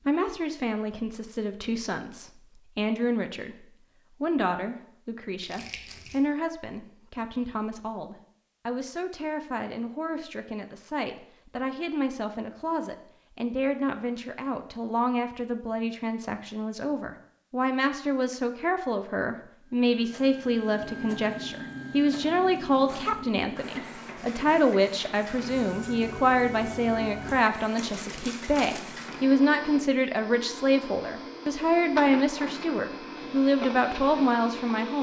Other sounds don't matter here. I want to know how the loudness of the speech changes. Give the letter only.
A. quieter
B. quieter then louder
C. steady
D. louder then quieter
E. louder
E.